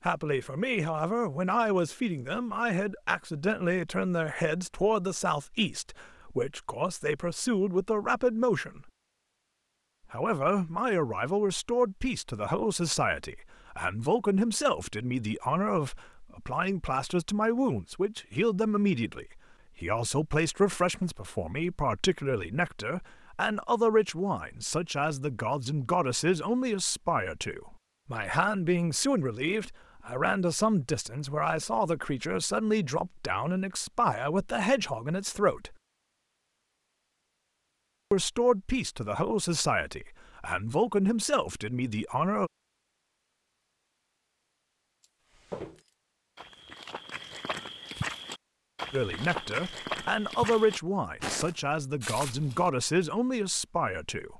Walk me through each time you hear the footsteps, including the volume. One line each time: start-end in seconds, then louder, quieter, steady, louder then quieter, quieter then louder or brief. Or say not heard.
45.4-52.7 louder.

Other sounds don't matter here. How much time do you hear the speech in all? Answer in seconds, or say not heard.
44 s.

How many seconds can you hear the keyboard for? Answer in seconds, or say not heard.
not heard.